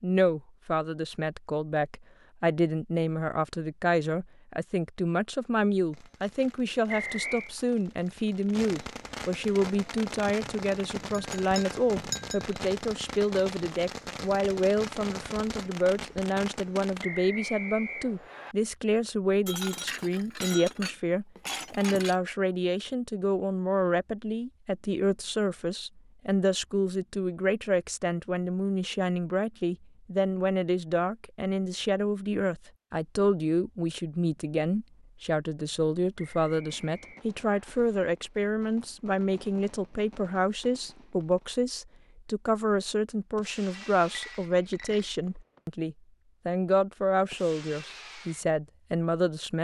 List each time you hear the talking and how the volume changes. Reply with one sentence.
The talking can be heard from 0.0 to 49.5 s, at a steady volume.